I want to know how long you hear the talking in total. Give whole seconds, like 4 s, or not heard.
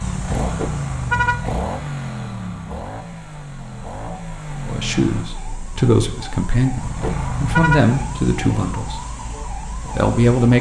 5 s.